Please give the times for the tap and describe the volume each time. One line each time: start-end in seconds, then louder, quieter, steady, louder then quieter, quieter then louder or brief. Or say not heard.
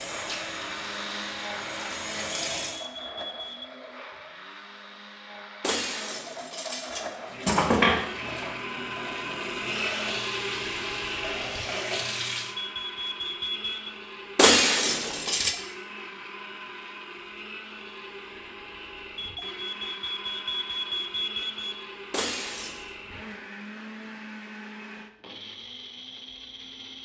0.0-2.9 brief
7.2-12.6 quieter then louder.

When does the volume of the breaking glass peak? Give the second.
15 s.